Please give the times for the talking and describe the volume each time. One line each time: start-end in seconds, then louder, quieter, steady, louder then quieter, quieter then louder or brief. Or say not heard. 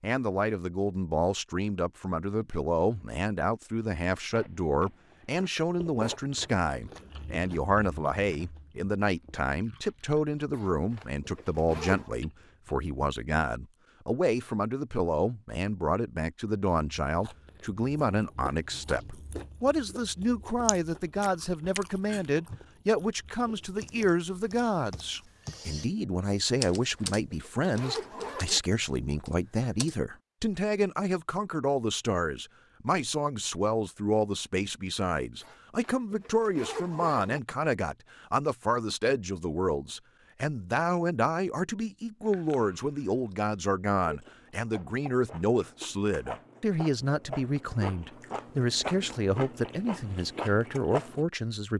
0.0-51.7 steady.